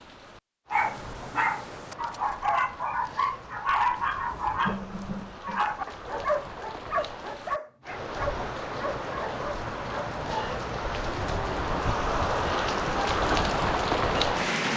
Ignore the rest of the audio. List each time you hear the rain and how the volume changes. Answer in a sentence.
The rain can be heard from 0.0 to 14.7 s, getting louder.